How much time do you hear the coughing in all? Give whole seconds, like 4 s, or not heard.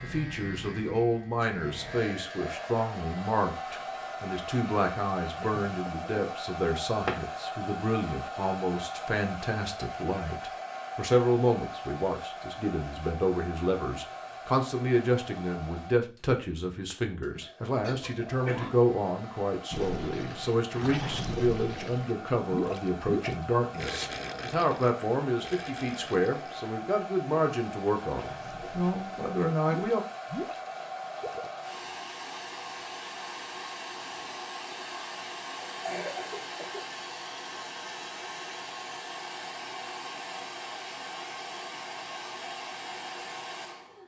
3 s.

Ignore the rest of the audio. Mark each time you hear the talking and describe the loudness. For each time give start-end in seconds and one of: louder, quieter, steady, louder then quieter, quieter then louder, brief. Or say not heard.
0.0-30.1 steady.